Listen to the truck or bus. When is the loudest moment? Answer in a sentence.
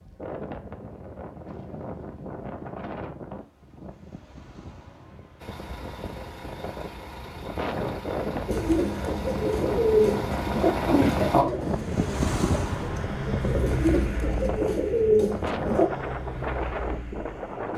The volume of the truck or bus peaks at 11 seconds.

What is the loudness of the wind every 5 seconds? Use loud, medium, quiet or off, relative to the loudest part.
medium, loud, loud, loud.